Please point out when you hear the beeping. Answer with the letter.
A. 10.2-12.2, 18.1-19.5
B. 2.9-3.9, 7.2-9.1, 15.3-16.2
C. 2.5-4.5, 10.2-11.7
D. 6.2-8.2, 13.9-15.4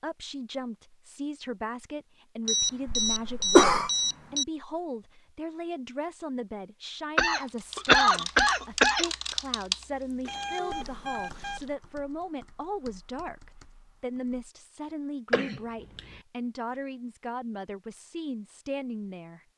C.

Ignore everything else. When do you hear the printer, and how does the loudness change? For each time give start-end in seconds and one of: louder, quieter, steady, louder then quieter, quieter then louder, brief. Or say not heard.
not heard.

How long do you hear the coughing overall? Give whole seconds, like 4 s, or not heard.
4 s.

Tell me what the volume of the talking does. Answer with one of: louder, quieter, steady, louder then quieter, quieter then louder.
steady.